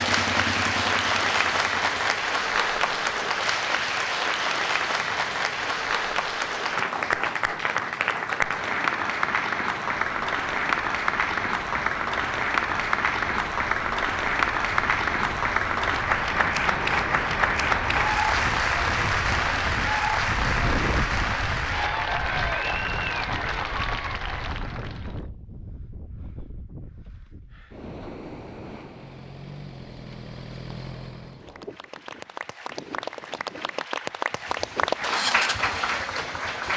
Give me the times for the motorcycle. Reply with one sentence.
The motorcycle can be heard from 0.0 to 2.1 s, from 28.6 to 31.4 s and from 34.4 to 36.7 s.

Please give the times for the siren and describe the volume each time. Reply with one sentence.
The siren can't be heard in this clip.